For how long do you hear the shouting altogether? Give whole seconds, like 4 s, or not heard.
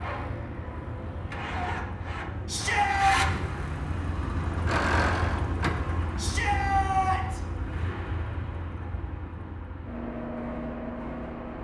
2 s.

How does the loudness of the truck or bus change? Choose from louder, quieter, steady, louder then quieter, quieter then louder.
louder then quieter.